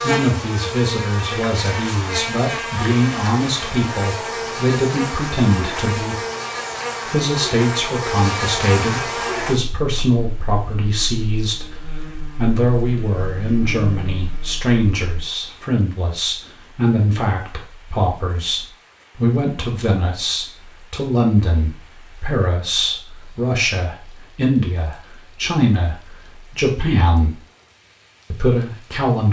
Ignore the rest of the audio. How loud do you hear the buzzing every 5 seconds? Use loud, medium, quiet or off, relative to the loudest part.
loud, loud, medium, off, off, off.